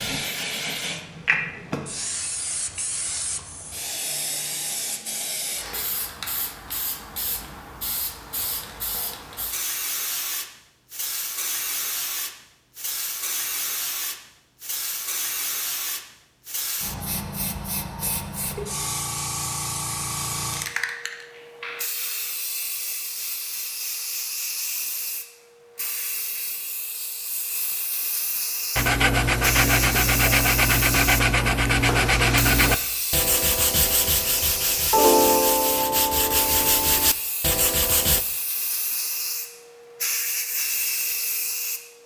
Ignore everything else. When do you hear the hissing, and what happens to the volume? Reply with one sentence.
The hissing can be heard from 0.0 to 41.9 s, at a steady volume.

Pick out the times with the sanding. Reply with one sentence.
You can hear the sanding from 28.8 to 38.2 s.